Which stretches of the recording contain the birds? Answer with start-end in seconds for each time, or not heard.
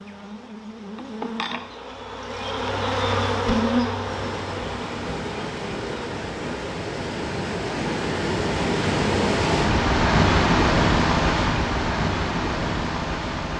not heard.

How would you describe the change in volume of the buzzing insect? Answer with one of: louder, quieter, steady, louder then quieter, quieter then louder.
louder then quieter.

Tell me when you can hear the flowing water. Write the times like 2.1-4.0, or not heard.
4.0-13.5.